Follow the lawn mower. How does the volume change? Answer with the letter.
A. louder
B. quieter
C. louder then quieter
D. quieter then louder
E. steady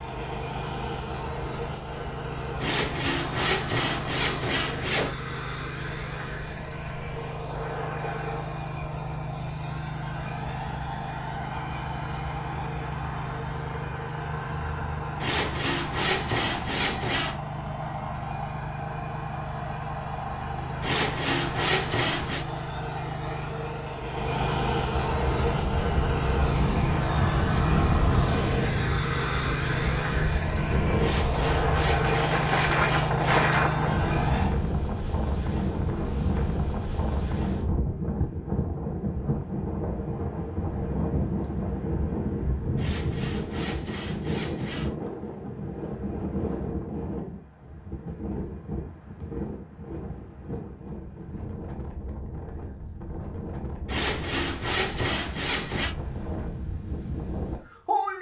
A.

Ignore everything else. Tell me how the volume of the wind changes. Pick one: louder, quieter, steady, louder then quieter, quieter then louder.
quieter.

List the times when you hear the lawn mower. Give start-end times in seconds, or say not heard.
0.0-34.5.